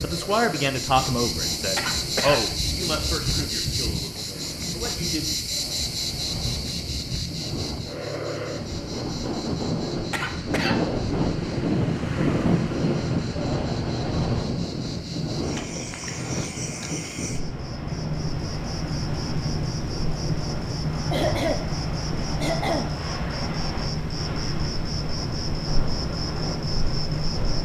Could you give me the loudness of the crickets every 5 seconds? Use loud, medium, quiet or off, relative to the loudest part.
loud, loud, quiet, loud, loud, loud.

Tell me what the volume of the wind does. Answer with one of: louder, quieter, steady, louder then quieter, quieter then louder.
louder then quieter.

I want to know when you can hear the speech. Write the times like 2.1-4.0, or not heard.
0.0-5.3.